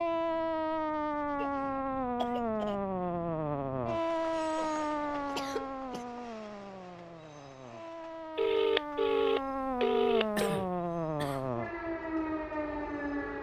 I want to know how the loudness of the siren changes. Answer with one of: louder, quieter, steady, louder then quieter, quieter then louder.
quieter then louder.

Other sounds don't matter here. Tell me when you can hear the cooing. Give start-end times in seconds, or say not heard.
not heard.